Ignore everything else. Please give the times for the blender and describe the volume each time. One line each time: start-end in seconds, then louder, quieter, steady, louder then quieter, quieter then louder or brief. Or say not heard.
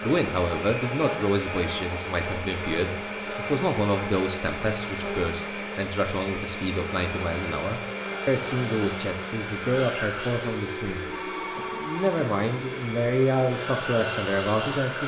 0.0-15.0 steady.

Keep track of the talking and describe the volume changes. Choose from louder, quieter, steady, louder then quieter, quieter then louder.
steady.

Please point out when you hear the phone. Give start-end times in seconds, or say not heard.
11.1-12.3.